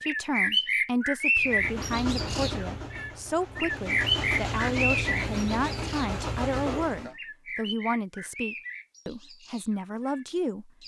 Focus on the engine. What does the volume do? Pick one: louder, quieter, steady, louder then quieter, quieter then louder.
quieter then louder.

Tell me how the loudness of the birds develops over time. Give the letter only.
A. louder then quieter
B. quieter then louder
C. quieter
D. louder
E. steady
C.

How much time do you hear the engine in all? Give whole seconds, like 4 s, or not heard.
6 s.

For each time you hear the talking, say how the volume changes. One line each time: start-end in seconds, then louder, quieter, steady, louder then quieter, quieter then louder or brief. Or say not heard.
0.0-10.8 steady.